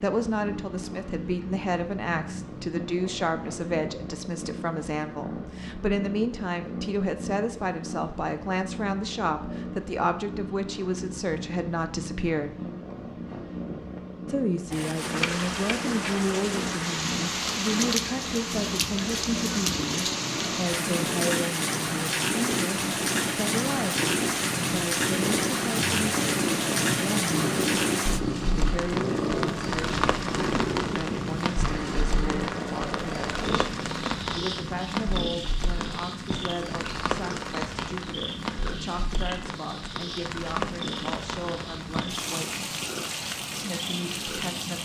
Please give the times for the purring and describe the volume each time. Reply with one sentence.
You can hear the purring from 0.0 to 44.8 s, getting louder then quieter.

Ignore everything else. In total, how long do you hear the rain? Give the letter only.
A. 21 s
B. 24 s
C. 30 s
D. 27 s
C.